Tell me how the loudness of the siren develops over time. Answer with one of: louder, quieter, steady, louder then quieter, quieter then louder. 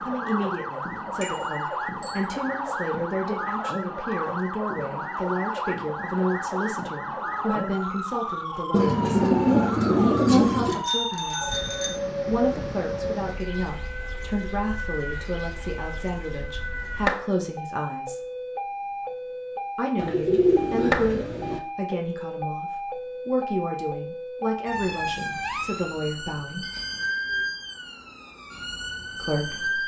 steady.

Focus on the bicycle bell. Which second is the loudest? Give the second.
11 s.